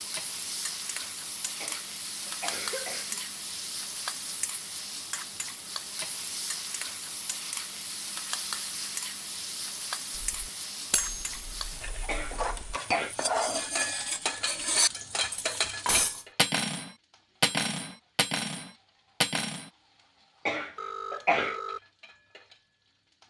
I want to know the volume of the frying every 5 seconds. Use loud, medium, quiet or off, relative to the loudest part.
loud, loud, loud, loud, quiet.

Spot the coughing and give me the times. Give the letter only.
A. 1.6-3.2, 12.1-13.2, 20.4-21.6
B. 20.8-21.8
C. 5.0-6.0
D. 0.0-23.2
A.